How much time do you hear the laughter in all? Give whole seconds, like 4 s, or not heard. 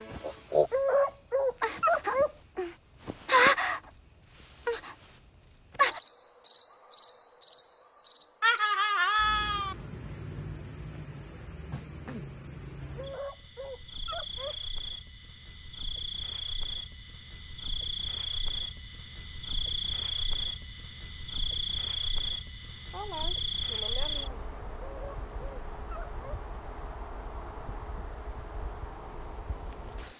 3 s.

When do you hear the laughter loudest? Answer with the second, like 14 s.
9 s.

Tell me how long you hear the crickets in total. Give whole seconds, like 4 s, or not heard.
30 s.